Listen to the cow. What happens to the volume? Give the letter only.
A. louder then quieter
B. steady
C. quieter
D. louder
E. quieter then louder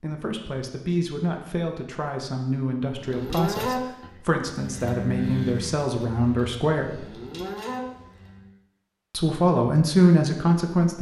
E.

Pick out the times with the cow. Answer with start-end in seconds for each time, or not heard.
3.0-8.6.